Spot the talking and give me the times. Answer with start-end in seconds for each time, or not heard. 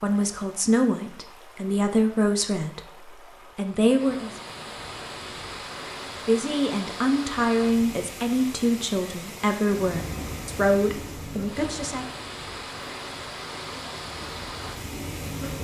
0.0-4.3, 6.2-12.1.